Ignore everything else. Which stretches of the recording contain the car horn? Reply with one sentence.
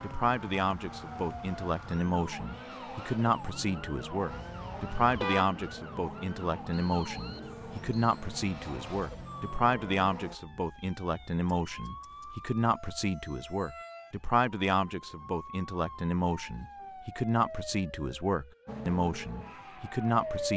The car horn can be heard from 4.3 to 5.6 s.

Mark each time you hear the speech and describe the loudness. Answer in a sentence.
You can hear the speech from 0.0 to 20.5 s, at a steady volume.